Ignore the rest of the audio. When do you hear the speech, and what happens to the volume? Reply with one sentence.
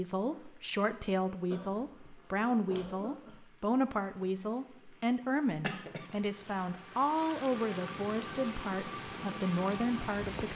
You can hear the speech from 0.0 to 10.5 s, at a steady volume.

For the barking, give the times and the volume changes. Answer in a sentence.
You can't hear the barking here.